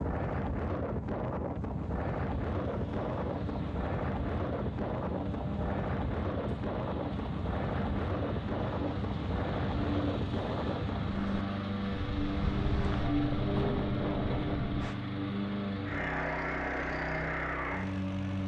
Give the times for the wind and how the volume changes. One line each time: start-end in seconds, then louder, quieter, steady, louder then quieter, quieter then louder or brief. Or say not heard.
0.0-14.9 steady.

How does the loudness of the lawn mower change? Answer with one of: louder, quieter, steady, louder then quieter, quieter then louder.
louder.